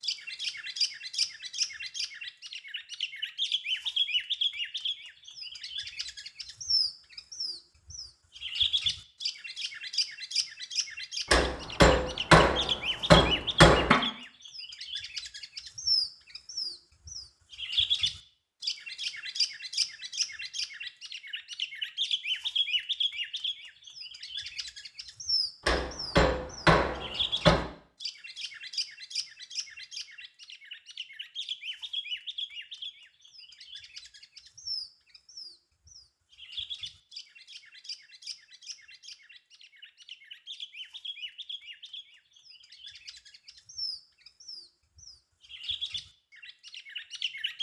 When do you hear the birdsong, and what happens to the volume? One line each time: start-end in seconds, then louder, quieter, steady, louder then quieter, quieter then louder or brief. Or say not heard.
0.0-47.5 quieter.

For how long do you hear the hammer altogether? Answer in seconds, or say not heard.
5 s.